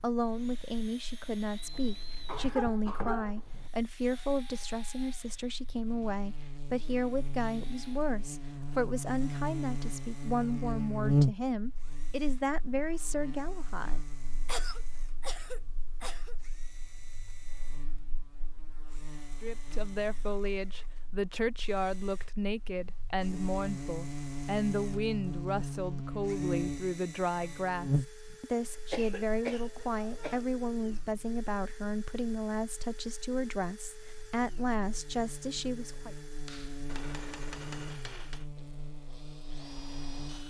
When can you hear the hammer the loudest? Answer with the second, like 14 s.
38 s.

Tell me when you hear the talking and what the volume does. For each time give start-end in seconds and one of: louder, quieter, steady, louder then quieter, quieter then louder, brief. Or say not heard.
0.0-14.0 steady
19.4-36.1 steady.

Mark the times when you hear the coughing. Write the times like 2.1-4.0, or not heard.
1.7-3.7, 14.4-16.4, 28.9-30.4.